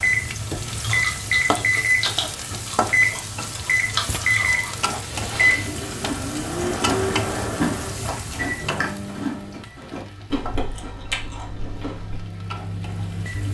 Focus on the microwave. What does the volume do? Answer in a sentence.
The loudness of the microwave goes down.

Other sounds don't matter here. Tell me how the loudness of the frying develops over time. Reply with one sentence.
The volume of the frying goes down.